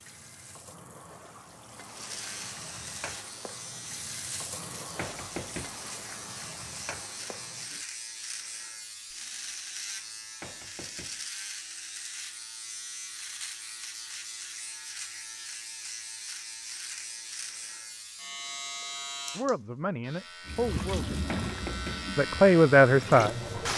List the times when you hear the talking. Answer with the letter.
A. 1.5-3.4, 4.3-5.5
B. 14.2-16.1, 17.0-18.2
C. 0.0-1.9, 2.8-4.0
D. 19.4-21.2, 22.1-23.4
D.